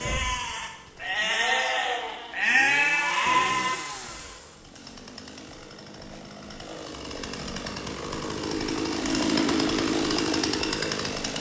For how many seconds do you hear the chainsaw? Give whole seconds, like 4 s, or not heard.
11 s.